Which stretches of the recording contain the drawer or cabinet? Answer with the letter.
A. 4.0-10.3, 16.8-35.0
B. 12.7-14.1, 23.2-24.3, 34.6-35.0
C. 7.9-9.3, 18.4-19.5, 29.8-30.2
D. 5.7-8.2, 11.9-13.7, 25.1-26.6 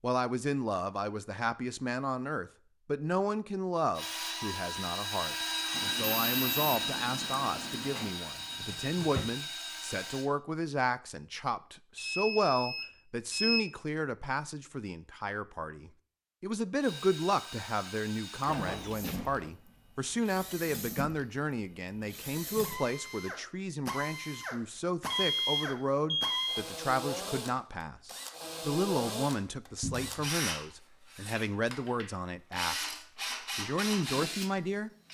C.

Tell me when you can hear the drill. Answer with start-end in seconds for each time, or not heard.
4.0-10.3, 16.8-35.0.